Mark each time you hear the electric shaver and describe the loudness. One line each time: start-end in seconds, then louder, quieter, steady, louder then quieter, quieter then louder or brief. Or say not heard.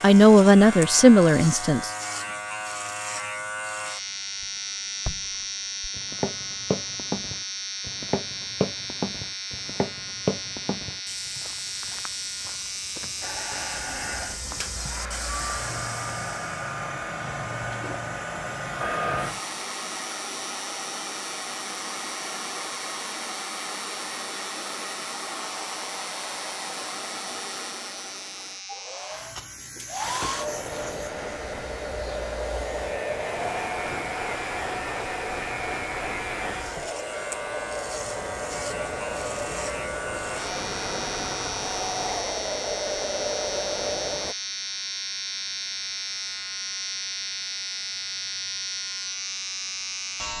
0.0-50.3 quieter then louder.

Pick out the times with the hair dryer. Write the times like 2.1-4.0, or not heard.
13.2-44.4.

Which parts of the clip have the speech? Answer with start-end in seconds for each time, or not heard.
0.0-1.9.